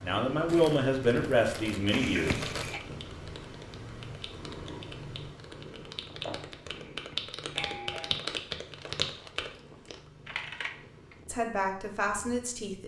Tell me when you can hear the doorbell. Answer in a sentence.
You can hear the doorbell from 1.9 to 2.8 s and from 6.8 to 8.2 s.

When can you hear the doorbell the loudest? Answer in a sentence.
The volume of the doorbell peaks at 2 seconds.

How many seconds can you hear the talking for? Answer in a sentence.
The talking can be heard for 4 seconds in total.